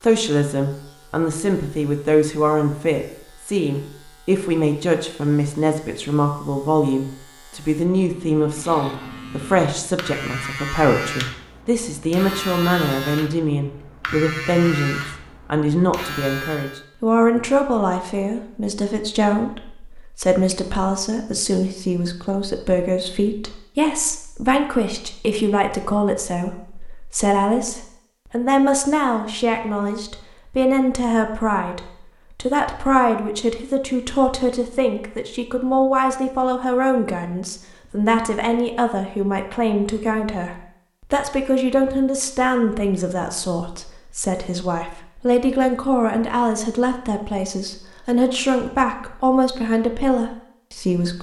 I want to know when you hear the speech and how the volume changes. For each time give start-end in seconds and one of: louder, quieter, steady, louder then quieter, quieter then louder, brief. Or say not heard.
0.0-51.1 steady.